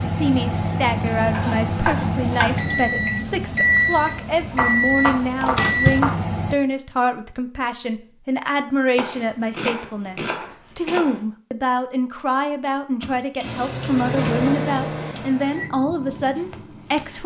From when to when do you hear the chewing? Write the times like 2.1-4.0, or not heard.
not heard.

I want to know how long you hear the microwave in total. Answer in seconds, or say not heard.
10 s.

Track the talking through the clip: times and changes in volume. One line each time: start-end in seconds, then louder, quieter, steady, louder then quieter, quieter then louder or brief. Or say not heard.
0.0-17.2 steady.